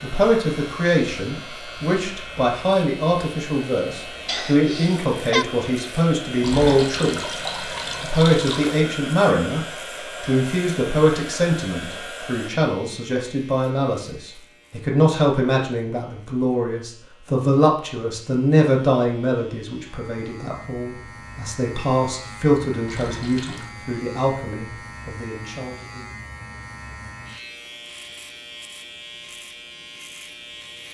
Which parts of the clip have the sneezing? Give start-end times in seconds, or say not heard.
4.2-5.5.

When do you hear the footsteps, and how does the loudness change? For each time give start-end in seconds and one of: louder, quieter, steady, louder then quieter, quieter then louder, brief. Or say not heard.
not heard.